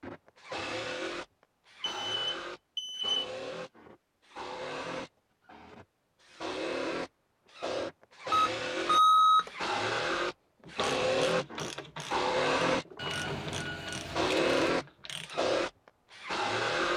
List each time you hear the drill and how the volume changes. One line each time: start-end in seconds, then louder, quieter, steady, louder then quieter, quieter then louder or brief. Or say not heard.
0.0-16.9 louder.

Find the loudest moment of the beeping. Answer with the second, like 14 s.
9 s.